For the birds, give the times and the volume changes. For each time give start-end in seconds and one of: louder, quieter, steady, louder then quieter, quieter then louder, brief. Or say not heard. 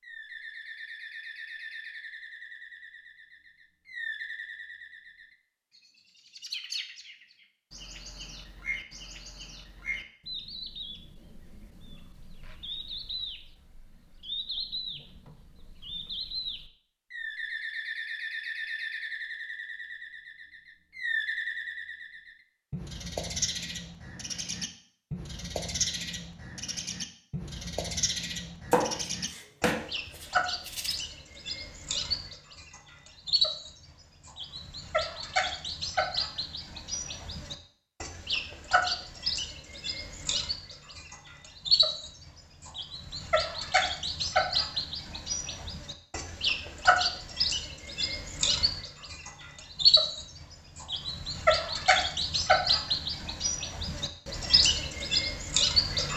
0.0-56.1 louder.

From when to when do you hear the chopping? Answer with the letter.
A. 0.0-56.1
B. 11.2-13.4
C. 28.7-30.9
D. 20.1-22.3
C.